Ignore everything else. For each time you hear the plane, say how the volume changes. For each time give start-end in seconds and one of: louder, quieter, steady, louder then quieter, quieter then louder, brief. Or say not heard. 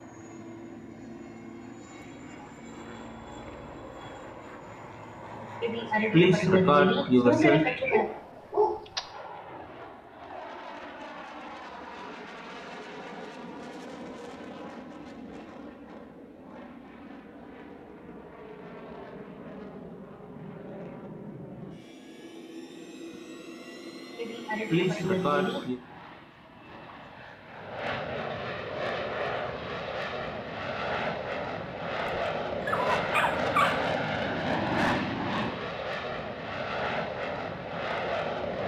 0.0-38.6 louder.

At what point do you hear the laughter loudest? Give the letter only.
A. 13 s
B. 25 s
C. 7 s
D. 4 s
C.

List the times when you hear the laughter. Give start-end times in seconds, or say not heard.
5.6-8.1, 24.1-25.8.